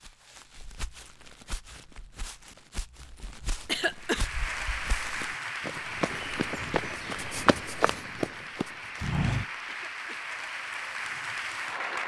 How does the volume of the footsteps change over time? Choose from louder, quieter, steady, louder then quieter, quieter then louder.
louder.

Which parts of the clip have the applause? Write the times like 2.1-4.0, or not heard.
4.0-12.0.